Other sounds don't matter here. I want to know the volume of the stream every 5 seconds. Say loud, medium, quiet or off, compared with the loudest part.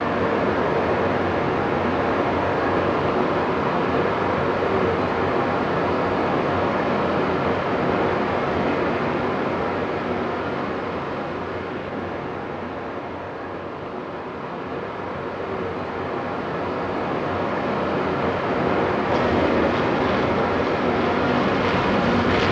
loud, loud, medium, loud, loud.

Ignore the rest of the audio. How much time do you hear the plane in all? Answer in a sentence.
The plane can be heard for 3 seconds in total.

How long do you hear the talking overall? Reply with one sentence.
You can't hear the talking here.